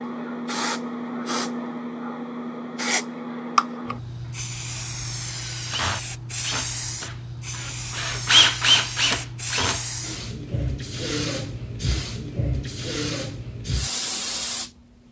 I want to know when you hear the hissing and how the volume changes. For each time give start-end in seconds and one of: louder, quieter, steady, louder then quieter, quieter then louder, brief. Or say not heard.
0.0-14.7 steady.